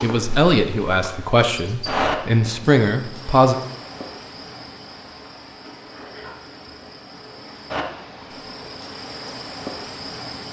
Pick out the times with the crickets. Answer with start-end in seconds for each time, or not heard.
0.0-10.4.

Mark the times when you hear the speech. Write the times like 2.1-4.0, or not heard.
0.0-3.5.